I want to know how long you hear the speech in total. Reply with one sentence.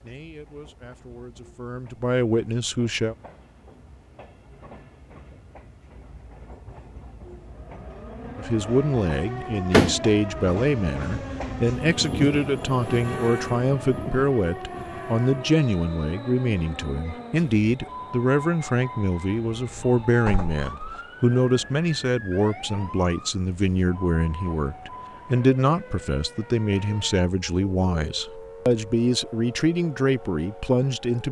You can hear the speech for 26 seconds altogether.